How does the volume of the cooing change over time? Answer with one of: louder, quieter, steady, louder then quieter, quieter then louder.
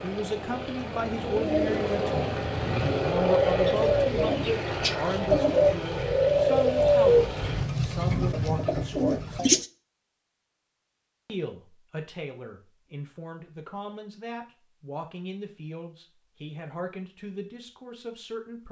louder then quieter.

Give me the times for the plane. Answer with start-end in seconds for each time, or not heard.
0.0-7.7.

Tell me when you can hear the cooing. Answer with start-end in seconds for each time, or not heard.
0.9-9.7.